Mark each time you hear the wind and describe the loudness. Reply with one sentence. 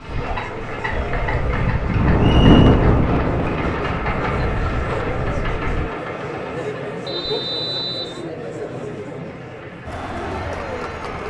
The wind can be heard from 0.0 to 5.9 s, getting louder then quieter.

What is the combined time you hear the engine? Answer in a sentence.
The engine can be heard for 11 seconds in total.